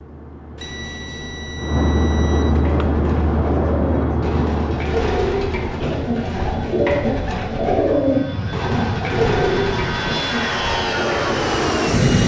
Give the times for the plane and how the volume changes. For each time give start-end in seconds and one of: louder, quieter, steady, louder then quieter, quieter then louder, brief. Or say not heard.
0.0-12.2 quieter then louder.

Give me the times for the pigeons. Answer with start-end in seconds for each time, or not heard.
2.5-11.4.